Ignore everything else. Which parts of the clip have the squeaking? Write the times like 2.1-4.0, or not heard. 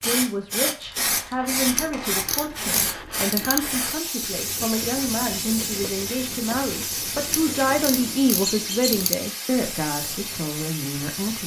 1.7-2.4, 8.4-8.9.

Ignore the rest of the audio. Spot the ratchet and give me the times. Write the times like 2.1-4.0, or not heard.
1.7-3.6, 7.3-9.2.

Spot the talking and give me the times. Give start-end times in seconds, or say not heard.
0.0-11.4.